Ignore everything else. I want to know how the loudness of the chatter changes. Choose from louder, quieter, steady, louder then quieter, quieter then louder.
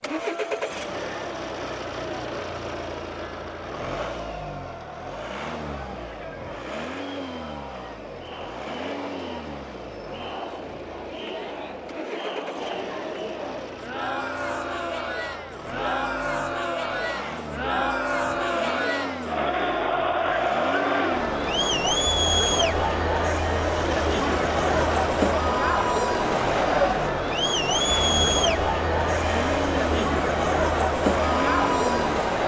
louder.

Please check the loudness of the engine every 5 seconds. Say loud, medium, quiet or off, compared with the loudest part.
loud, medium, medium, medium, loud, loud, loud.